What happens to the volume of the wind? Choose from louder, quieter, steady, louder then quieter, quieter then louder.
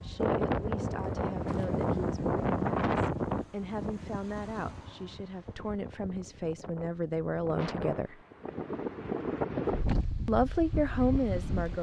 quieter then louder.